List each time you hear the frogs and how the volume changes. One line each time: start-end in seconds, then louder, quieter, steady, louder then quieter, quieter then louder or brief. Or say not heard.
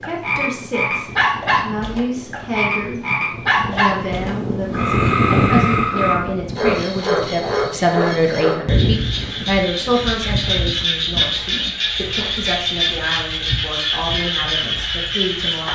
0.0-15.6 steady.